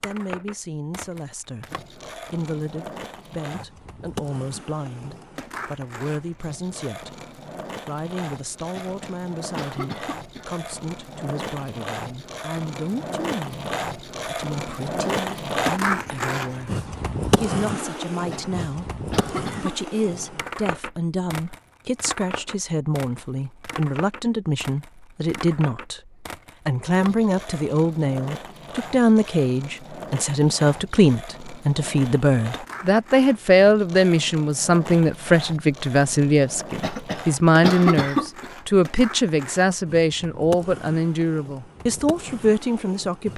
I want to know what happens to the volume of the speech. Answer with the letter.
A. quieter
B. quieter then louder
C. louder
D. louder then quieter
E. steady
C.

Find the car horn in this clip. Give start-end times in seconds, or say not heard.
not heard.